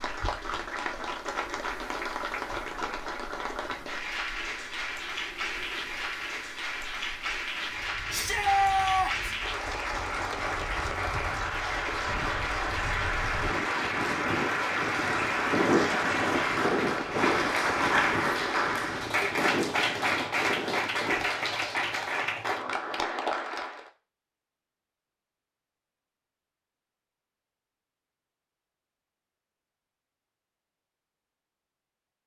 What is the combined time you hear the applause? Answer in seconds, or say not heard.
24 s.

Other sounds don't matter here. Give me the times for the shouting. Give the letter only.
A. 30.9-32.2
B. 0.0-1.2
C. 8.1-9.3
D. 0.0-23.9
C.